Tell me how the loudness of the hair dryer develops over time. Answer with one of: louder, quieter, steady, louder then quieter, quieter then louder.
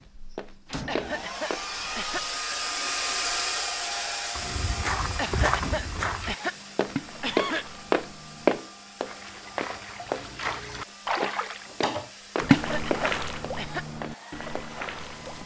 quieter.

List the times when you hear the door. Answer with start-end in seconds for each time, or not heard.
0.7-1.2, 5.6-7.0, 11.7-12.1.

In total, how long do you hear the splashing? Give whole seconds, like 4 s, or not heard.
8 s.